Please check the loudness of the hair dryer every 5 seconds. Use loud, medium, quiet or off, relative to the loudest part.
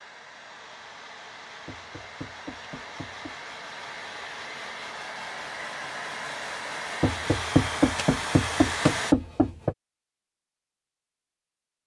medium, loud, off.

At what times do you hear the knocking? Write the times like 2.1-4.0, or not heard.
1.6-3.4, 7.0-9.8.